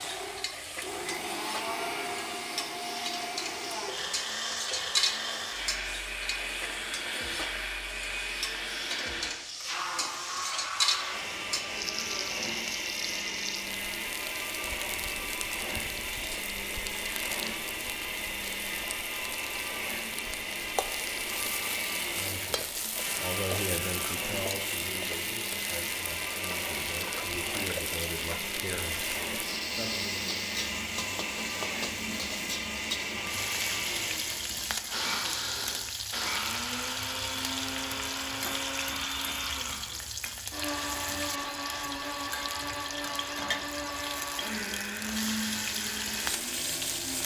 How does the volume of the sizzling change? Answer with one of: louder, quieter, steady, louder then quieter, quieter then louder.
steady.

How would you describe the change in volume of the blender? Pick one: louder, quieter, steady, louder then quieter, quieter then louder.
steady.